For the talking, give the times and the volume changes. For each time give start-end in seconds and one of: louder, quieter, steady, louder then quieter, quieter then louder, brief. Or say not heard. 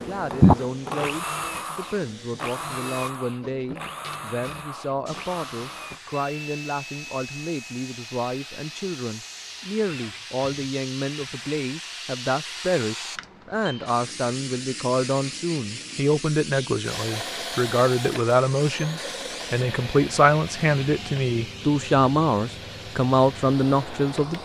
0.0-24.4 louder.